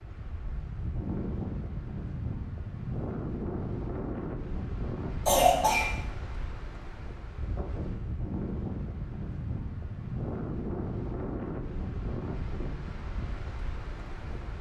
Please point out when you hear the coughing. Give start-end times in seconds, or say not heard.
5.2-6.0.